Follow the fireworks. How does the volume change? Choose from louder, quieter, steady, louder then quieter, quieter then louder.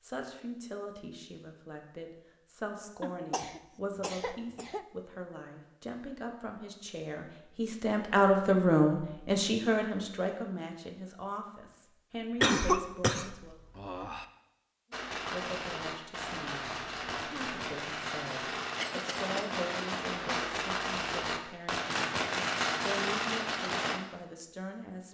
louder.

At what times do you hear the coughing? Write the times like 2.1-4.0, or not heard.
3.0-4.8, 12.4-14.2, 18.8-19.5.